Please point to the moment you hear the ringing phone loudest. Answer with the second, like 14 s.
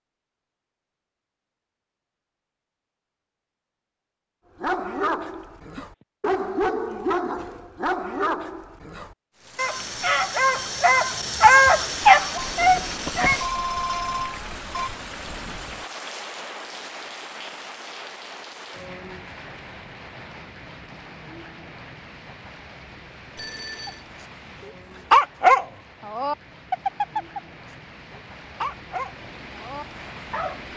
14 s.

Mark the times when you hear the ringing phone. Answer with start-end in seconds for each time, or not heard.
5.3-6.0, 12.4-14.9, 23.4-24.1.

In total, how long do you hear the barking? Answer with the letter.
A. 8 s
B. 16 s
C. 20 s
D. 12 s
B.